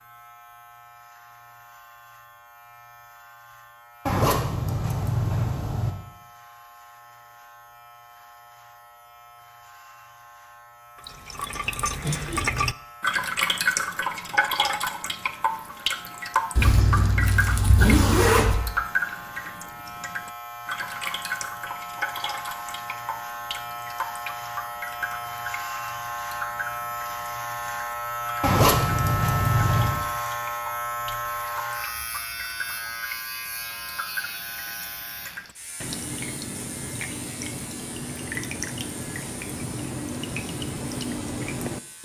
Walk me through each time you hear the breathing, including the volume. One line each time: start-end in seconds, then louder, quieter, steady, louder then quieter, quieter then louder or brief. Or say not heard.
not heard.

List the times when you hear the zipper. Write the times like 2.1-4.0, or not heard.
4.0-5.9, 16.6-18.6, 28.4-30.1.